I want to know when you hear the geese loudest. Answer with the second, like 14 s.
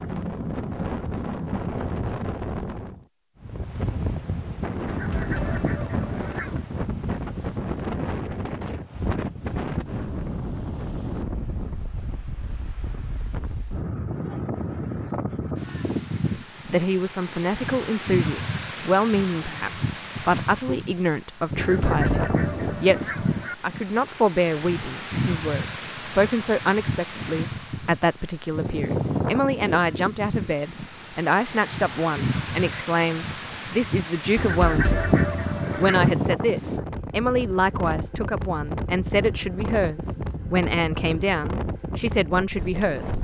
35 s.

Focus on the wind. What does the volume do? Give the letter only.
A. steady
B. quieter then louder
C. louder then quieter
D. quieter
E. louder
A.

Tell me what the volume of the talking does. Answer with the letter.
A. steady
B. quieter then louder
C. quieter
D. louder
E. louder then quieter
A.